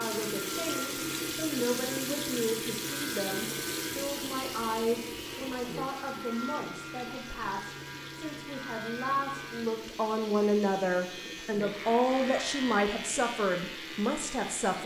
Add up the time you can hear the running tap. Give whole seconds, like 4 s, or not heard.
15 s.